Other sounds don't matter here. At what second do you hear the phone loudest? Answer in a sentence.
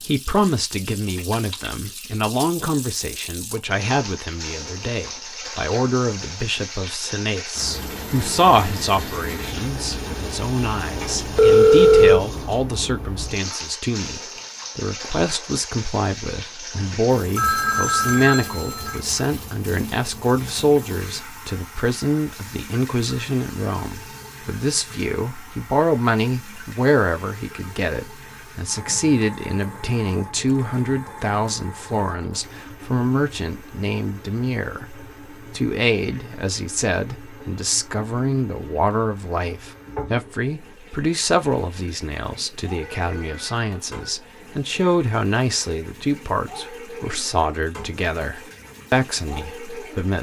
The loudest moment of the phone is at 12 seconds.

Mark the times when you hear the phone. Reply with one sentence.
The phone can be heard from 11.3 to 12.2 s, from 16.8 to 19.0 s and from 42.8 to 44.1 s.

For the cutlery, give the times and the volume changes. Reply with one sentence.
The cutlery can't be heard in this clip.